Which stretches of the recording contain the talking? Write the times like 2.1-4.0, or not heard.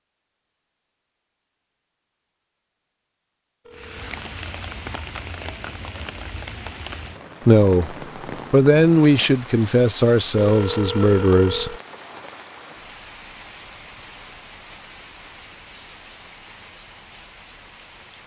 7.5-11.8.